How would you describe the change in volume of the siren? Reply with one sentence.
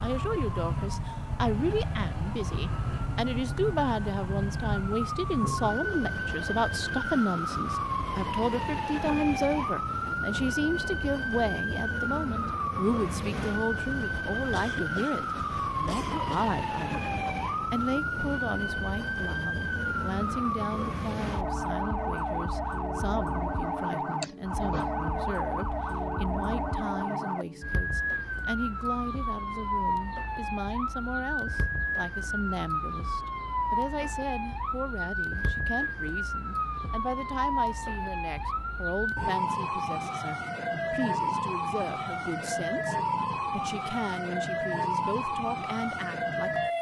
The loudness of the siren stays about the same.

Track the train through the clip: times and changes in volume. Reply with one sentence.
The train can't be heard in this clip.